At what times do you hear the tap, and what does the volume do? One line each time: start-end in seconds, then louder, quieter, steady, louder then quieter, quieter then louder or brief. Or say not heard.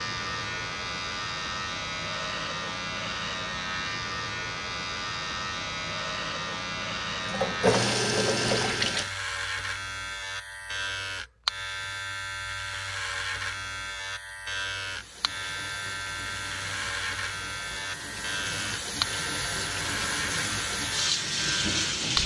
7.2-9.1 brief
14.8-22.2 louder.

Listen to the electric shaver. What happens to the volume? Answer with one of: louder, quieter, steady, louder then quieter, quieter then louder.
steady.